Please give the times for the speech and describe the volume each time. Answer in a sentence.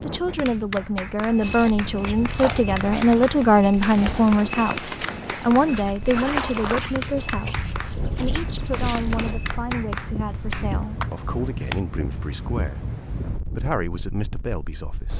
The speech can be heard from 0.0 to 15.1 s, getting quieter.